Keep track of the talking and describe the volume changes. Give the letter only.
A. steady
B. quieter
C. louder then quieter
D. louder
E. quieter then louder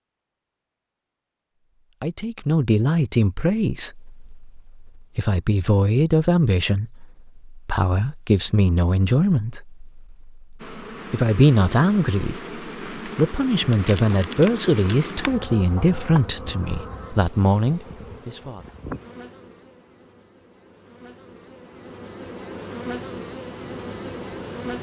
A.